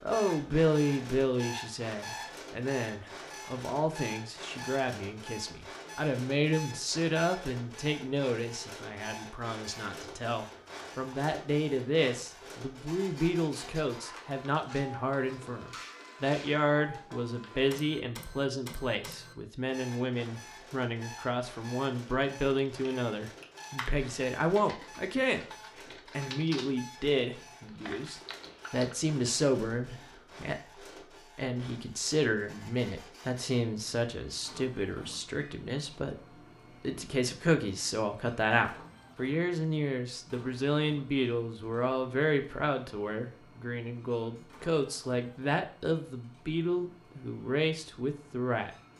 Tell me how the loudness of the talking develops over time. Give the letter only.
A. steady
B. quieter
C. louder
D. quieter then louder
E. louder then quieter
A.